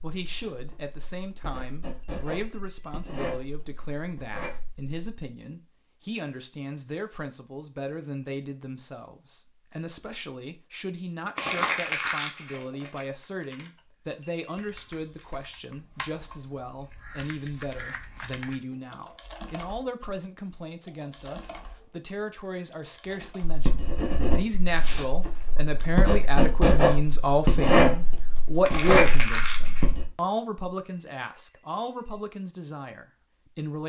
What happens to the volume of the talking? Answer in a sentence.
The loudness of the talking goes up.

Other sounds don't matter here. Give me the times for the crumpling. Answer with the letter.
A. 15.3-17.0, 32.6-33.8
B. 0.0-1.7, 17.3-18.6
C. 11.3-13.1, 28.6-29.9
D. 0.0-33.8
C.